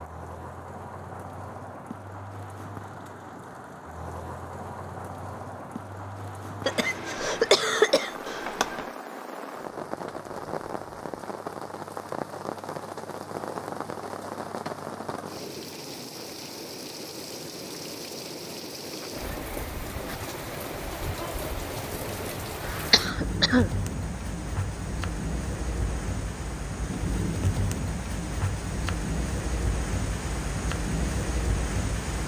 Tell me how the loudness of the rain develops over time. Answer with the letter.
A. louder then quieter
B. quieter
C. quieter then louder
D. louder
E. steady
D.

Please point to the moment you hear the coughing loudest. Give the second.
8 s.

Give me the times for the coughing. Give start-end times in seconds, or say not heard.
6.7-8.8, 22.9-23.7.